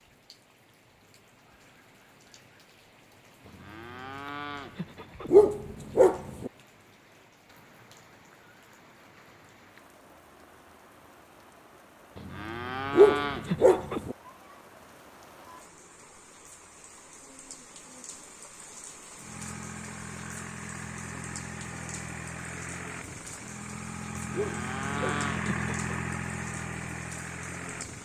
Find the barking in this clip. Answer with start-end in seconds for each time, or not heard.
5.3-6.5, 12.9-14.2, 24.3-25.2.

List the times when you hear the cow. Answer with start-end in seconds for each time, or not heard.
3.4-5.4, 12.2-14.1, 24.2-25.9.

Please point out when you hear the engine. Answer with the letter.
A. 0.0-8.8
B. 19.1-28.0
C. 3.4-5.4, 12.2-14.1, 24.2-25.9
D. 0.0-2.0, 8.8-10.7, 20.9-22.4
B.